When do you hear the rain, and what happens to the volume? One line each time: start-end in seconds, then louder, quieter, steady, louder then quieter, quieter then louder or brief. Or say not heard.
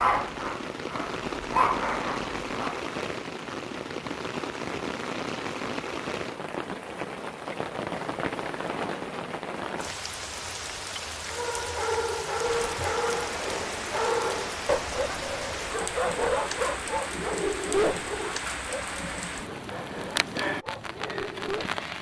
0.0-21.9 steady.